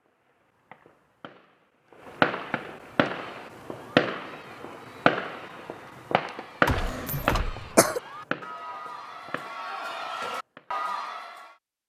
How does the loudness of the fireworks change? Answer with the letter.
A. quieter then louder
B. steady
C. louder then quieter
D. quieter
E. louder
D.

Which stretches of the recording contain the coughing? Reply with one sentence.
The coughing can be heard from 6.7 to 8.0 s.